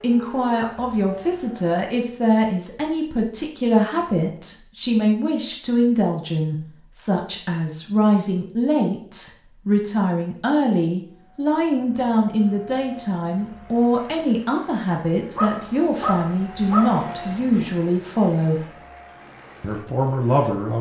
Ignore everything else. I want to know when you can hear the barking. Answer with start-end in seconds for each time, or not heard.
15.3-17.8.